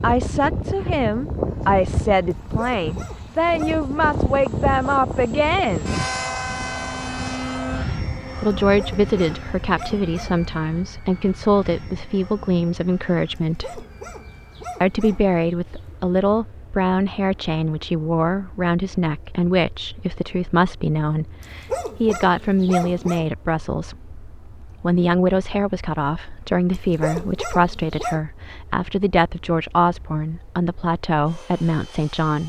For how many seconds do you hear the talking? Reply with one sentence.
You can hear the talking for 29 seconds altogether.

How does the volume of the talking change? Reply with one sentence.
The volume of the talking stays about the same.